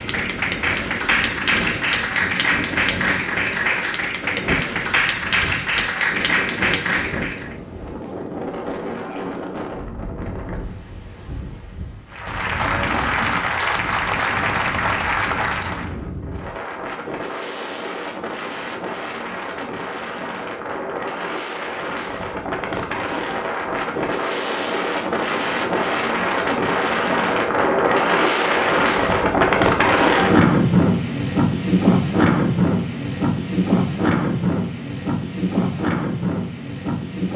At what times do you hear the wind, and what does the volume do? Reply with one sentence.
You can hear the wind from 0.0 to 37.3 s, getting louder.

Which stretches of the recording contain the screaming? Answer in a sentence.
You can't hear the screaming here.